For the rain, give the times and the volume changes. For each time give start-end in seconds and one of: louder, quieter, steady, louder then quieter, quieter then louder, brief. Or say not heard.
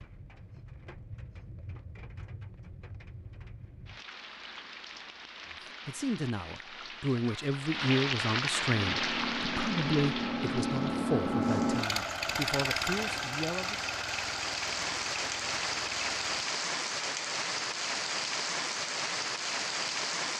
0.0-20.3 louder.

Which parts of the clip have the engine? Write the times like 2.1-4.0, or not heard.
8.7-16.2.